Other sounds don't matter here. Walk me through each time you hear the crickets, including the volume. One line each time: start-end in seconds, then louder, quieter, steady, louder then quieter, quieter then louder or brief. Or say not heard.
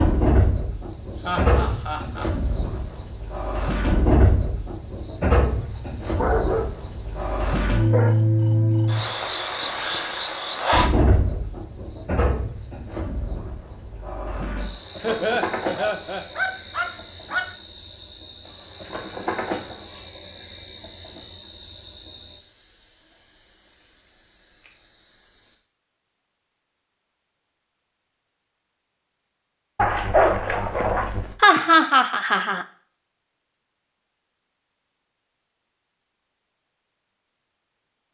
0.0-25.6 quieter.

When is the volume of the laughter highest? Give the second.
32 s.